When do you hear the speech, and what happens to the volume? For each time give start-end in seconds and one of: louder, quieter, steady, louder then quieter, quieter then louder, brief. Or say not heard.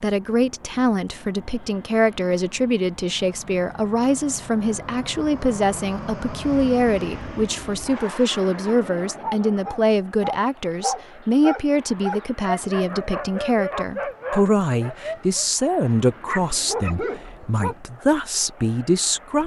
0.0-19.4 steady.